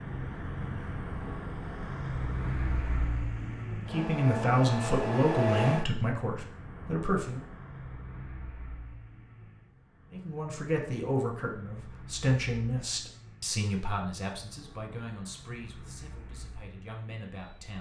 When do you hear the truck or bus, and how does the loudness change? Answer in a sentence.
You can hear the truck or bus from 0.0 to 17.7 s, getting quieter.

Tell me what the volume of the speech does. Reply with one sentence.
The volume of the speech goes down.